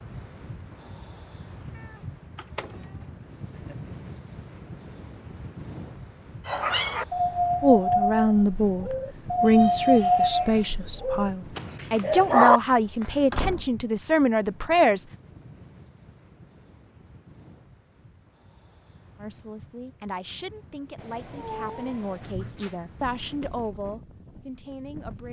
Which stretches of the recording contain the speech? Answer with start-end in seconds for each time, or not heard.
7.6-15.1, 19.2-25.2.